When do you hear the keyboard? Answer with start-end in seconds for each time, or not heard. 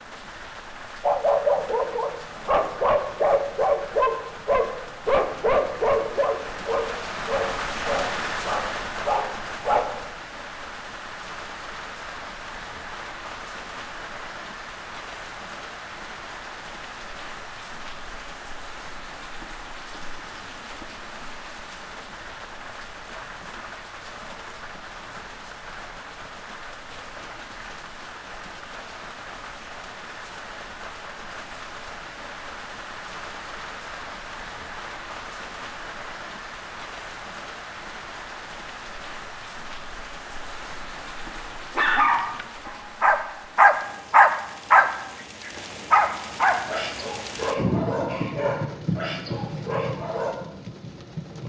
not heard.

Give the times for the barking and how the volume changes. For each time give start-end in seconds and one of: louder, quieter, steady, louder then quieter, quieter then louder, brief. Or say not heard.
1.0-10.1 quieter
41.4-50.4 louder then quieter.